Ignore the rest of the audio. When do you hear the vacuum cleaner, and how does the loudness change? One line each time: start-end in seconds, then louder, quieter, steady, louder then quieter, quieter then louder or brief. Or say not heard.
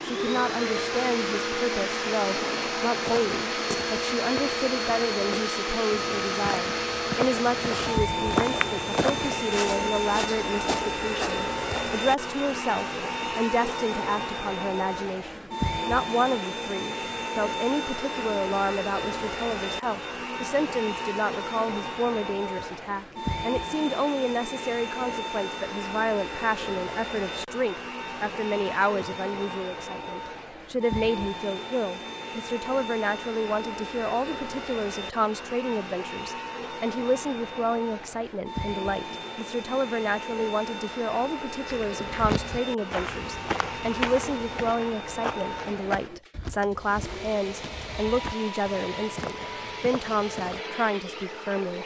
0.0-51.8 quieter.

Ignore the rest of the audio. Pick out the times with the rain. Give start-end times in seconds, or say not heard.
not heard.